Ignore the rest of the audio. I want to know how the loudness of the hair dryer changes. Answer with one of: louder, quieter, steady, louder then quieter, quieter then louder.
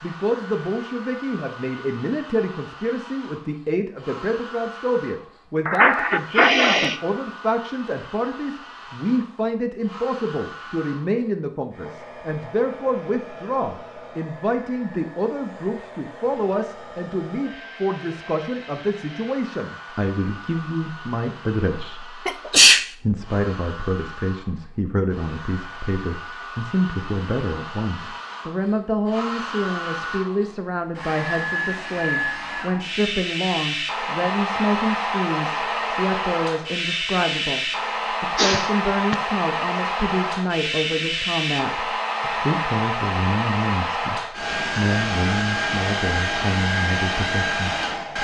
louder.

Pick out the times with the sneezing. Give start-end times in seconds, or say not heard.
5.7-7.0, 22.2-22.9, 38.4-39.1.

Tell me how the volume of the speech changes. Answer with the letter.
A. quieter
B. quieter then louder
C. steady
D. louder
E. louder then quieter
C.